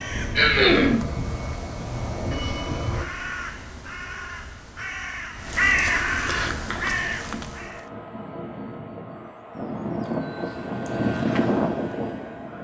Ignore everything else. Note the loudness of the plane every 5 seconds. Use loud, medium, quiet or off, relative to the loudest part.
medium, medium, loud.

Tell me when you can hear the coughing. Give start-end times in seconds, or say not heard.
0.3-1.0.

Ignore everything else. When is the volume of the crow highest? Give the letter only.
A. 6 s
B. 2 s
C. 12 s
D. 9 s
A.